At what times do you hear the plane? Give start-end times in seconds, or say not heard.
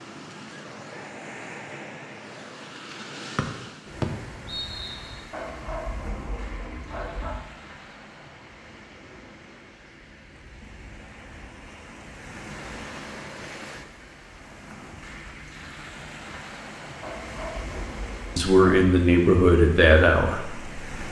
not heard.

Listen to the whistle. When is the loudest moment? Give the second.
4 s.